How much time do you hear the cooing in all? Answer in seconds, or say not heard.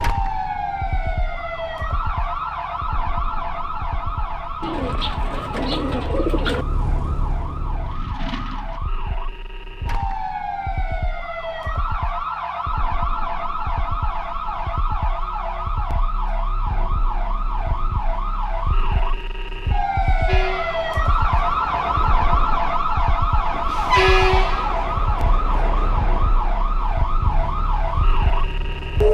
2 s.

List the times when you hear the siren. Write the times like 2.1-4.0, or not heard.
0.0-29.0.